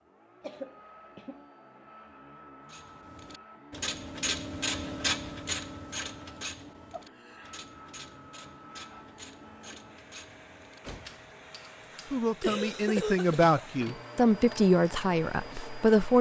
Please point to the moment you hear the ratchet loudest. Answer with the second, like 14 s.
5 s.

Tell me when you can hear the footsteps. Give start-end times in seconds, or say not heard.
not heard.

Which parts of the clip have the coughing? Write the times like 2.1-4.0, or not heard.
0.4-1.4, 6.9-7.5, 12.4-13.6.